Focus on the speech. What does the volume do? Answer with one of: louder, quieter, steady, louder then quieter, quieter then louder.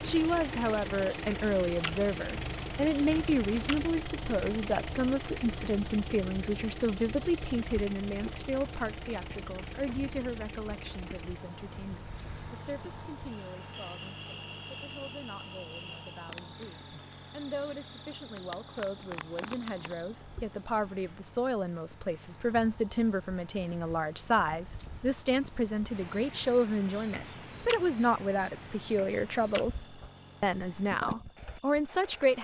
quieter then louder.